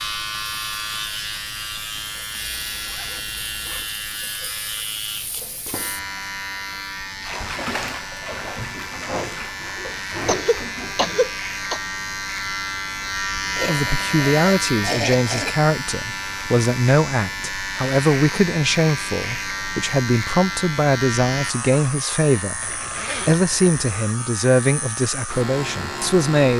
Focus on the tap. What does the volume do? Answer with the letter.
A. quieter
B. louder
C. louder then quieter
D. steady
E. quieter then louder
B.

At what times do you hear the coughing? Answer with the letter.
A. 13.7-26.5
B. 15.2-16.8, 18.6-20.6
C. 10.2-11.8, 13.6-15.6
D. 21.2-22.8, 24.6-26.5
C.